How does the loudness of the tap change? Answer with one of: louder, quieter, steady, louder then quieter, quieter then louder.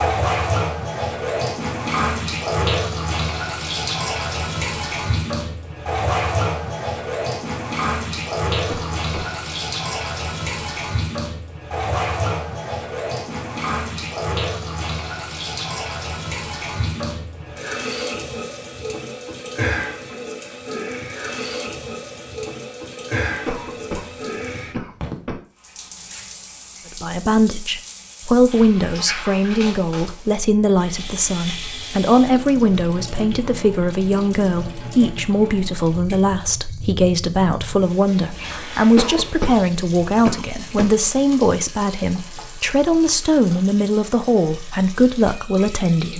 quieter.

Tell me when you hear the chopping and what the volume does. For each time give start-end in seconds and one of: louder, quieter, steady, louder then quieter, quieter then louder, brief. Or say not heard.
not heard.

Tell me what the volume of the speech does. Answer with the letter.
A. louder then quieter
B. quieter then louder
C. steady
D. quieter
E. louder
C.